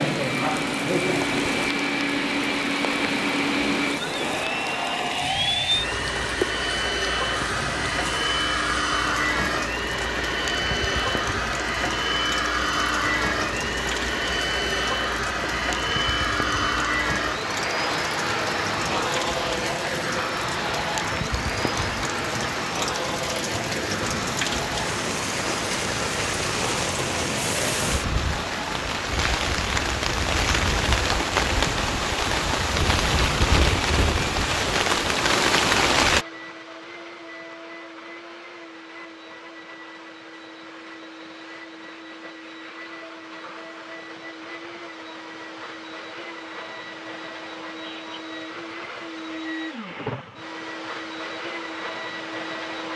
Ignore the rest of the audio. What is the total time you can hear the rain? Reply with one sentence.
The rain can be heard for 36 seconds in total.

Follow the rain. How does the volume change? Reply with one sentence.
The loudness of the rain goes up.